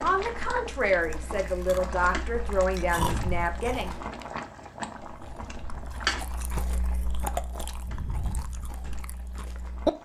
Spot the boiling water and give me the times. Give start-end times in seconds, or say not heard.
0.0-10.0.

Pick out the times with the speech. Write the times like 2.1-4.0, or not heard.
0.0-4.0.